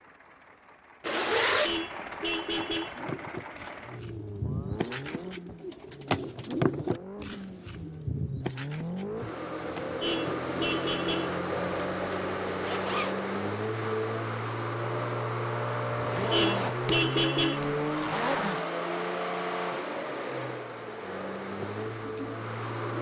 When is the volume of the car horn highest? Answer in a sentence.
The volume of the car horn peaks at 17 seconds.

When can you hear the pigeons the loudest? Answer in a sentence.
The loudest moment of the pigeons is at 7 seconds.